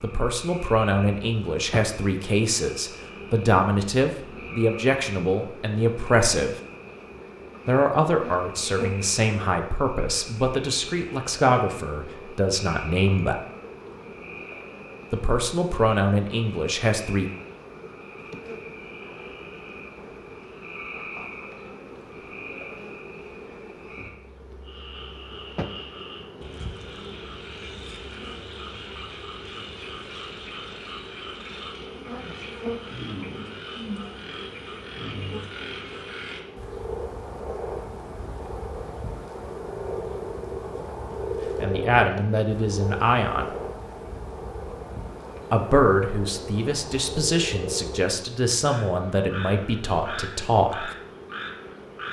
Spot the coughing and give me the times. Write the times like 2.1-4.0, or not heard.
not heard.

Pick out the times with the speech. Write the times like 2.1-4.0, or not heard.
0.0-6.5, 7.7-13.4, 15.1-17.3, 41.6-43.5, 45.5-51.0.